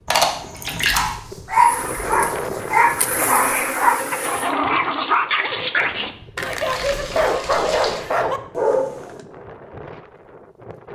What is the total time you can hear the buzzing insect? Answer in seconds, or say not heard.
3 s.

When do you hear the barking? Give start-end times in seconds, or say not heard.
0.9-9.2.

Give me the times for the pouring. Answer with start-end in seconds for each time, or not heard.
0.1-1.1, 6.7-8.0.